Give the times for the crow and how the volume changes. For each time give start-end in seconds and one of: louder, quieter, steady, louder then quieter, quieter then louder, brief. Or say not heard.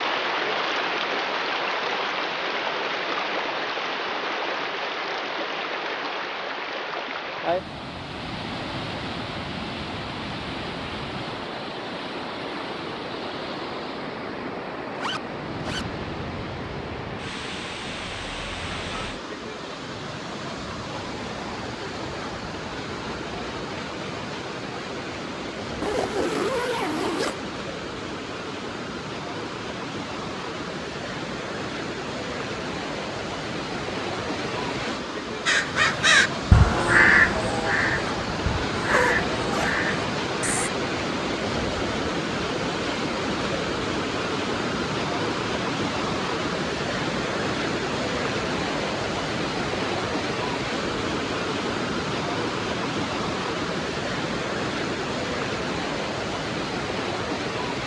35.5-40.7 quieter.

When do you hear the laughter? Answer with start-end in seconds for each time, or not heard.
not heard.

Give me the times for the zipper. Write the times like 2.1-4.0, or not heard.
14.9-15.8, 25.8-27.4, 38.8-39.8.